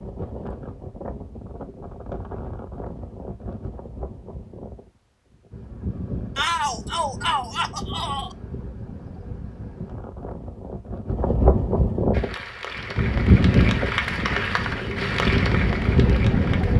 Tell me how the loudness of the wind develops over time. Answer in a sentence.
The volume of the wind goes up.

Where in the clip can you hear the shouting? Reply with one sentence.
You can hear the shouting from 6.3 to 8.3 s.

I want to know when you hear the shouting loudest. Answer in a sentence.
The loudest moment of the shouting is at 7 seconds.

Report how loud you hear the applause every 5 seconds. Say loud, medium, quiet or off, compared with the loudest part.
off, off, loud, loud.